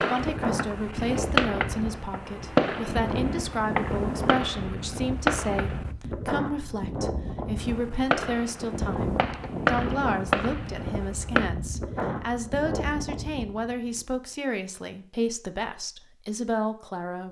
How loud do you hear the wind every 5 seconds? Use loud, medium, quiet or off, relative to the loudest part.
loud, loud, loud, off.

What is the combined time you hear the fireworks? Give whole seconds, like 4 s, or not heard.
10 s.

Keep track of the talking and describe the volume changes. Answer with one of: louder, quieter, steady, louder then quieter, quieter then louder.
steady.